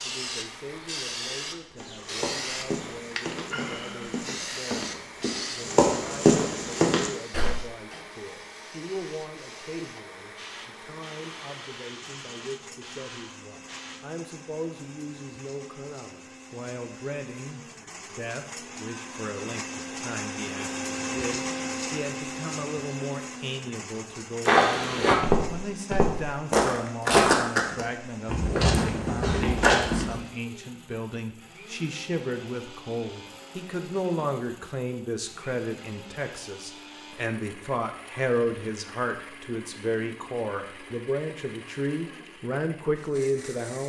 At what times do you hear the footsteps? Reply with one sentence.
You can hear the footsteps from 1.8 to 7.5 s and from 24.4 to 30.2 s.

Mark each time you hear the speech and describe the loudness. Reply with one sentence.
The speech can be heard from 0.0 to 43.8 s, getting louder.